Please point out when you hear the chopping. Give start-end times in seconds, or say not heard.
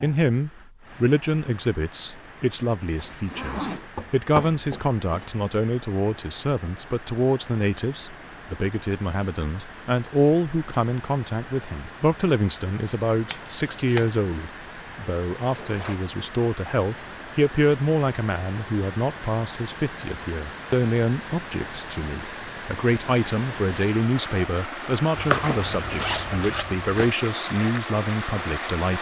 3.8-5.5, 13.3-14.2, 25.1-27.1.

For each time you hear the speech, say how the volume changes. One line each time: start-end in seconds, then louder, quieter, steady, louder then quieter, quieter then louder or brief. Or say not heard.
0.0-28.9 steady.